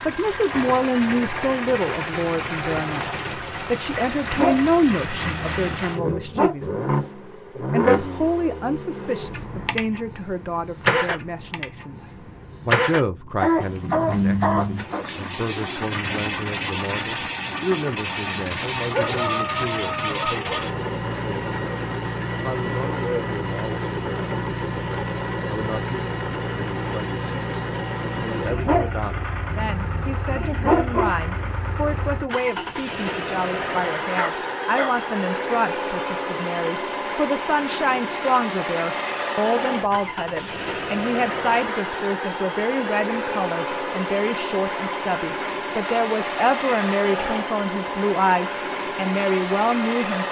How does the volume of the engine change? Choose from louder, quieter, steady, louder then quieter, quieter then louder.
steady.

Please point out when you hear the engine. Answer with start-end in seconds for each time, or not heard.
0.0-50.2.